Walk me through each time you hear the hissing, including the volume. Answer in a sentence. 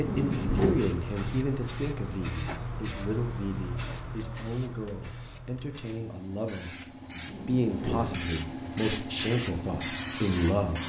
The hissing can be heard from 0.0 to 10.8 s, getting quieter then louder.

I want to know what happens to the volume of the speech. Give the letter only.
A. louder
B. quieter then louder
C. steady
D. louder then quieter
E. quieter
B.